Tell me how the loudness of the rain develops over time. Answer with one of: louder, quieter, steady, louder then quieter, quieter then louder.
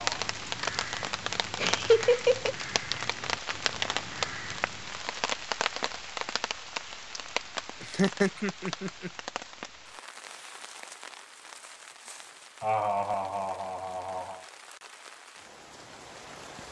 quieter.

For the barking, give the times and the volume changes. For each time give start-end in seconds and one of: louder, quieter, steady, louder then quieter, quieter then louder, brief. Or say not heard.
not heard.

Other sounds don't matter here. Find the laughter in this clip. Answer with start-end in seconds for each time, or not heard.
1.6-2.5, 7.8-9.1, 12.6-14.4.